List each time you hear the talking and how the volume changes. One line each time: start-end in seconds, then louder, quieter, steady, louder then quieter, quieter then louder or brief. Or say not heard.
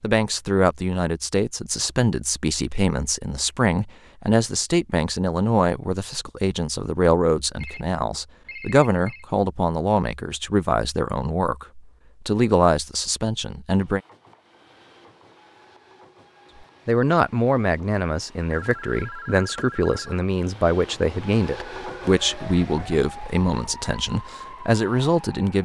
0.0-14.0 steady
16.9-25.6 steady.